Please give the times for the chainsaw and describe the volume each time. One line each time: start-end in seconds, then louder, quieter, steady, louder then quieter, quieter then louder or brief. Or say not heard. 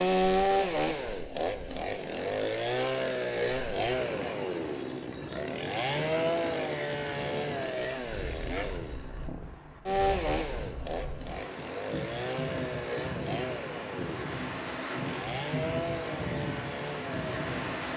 0.0-17.8 quieter.